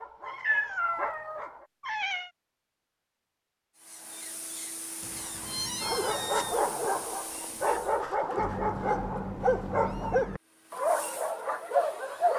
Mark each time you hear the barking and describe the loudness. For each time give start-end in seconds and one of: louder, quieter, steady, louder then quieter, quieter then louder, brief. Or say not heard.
0.0-1.7 brief
5.8-12.3 steady.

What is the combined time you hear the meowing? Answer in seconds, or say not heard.
6 s.